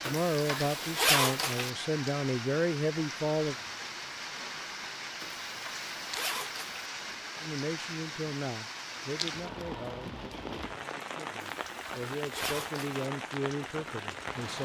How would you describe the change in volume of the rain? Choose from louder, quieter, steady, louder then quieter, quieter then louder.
steady.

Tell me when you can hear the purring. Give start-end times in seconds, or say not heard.
not heard.